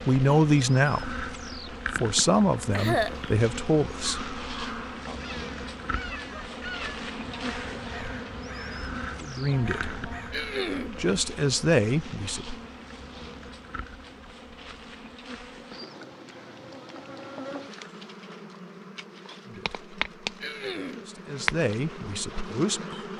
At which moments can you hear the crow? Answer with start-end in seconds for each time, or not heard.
4.0-10.4.